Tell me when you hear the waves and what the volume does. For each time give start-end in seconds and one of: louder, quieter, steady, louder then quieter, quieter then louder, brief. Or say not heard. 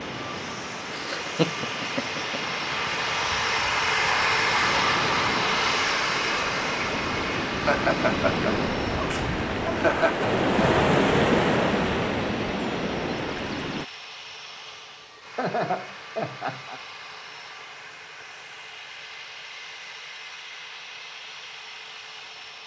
0.0-13.8 louder.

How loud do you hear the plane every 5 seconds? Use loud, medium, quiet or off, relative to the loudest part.
loud, loud, quiet, quiet, quiet.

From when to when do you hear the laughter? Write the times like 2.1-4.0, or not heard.
0.9-2.4, 7.6-10.3, 15.3-16.8.